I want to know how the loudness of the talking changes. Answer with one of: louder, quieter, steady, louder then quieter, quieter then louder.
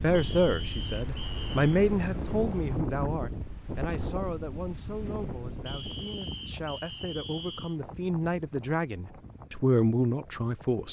quieter then louder.